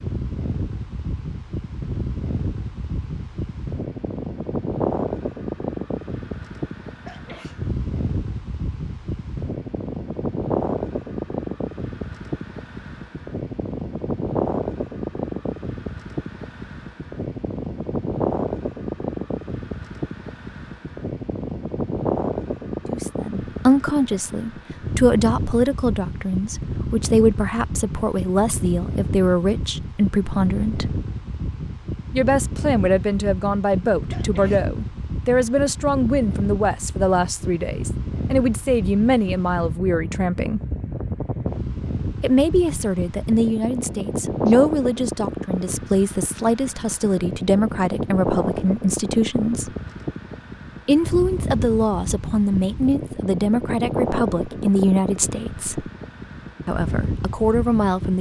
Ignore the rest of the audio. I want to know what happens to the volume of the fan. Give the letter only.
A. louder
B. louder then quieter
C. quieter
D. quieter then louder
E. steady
E.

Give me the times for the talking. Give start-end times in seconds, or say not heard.
22.9-30.9, 32.1-40.6, 42.2-49.7, 50.9-55.9, 56.6-58.1.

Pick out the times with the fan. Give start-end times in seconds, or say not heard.
0.0-58.1.